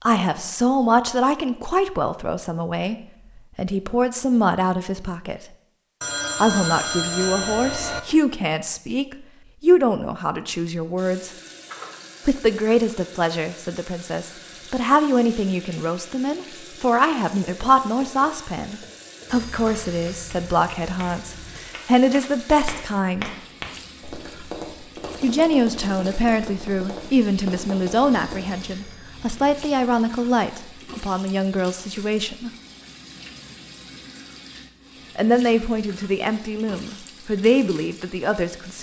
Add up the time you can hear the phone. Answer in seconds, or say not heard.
6 s.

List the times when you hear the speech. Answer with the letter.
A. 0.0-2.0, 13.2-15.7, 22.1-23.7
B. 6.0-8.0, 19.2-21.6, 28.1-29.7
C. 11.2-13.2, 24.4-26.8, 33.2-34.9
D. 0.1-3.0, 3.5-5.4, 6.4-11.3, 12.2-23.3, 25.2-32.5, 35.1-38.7
D.